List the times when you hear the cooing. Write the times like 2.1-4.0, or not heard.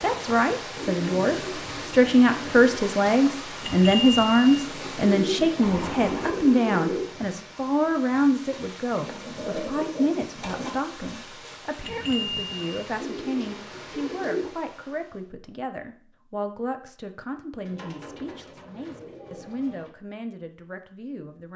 0.8-2.8, 5.0-7.0, 9.0-10.8, 12.9-14.5, 17.6-19.9.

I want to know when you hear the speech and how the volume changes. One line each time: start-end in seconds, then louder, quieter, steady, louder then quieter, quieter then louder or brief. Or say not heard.
0.0-21.5 quieter.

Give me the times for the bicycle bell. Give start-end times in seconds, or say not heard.
3.6-4.5, 11.8-12.8.